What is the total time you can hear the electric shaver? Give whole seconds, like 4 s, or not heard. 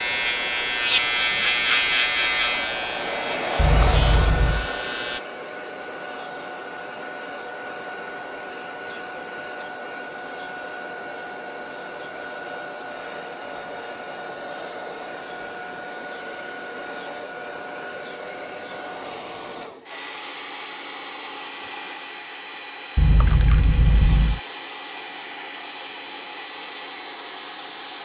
5 s.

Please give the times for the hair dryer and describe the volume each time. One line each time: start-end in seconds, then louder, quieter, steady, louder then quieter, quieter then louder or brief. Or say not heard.
0.0-27.9 quieter.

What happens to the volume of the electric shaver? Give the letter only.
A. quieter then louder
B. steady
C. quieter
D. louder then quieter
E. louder
C.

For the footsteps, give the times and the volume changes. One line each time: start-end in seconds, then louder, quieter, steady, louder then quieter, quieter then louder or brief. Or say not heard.
not heard.